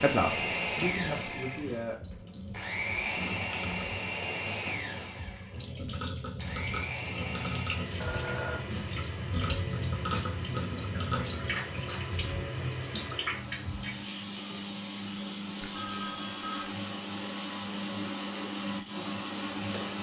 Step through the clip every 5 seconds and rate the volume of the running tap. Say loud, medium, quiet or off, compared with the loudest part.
medium, loud, loud, medium.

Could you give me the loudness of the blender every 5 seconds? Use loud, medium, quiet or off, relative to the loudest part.
loud, medium, medium, loud.